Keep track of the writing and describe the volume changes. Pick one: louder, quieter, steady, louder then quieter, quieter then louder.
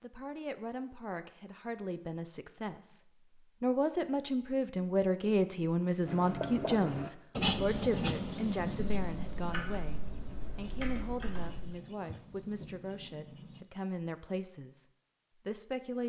quieter.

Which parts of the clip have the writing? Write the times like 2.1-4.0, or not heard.
6.0-13.7.